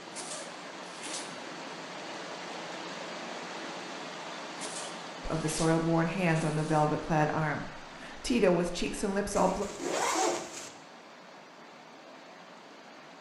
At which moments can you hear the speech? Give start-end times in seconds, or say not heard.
5.2-9.7.